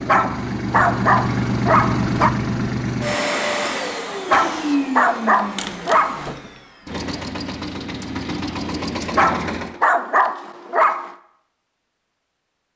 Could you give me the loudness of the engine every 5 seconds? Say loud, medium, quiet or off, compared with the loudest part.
loud, medium, off.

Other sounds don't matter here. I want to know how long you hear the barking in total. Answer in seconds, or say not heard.
6 s.